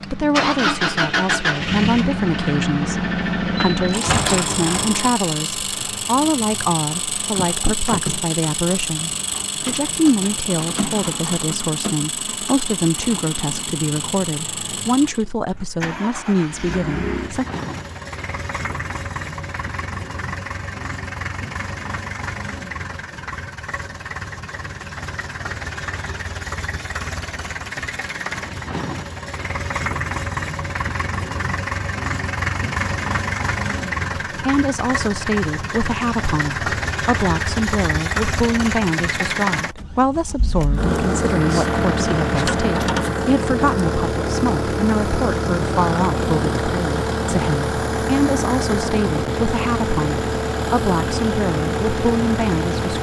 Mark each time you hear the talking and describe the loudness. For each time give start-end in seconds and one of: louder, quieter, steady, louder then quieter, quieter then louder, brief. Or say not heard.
0.1-17.4 steady
34.3-52.9 steady.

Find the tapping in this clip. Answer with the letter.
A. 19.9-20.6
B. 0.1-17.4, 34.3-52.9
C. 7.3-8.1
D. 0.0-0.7
C.